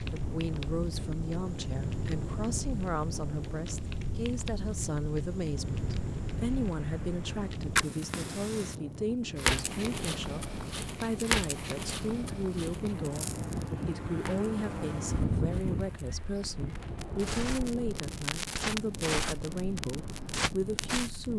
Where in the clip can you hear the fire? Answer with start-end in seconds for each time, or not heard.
0.0-21.3.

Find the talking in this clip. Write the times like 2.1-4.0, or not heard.
0.1-21.3.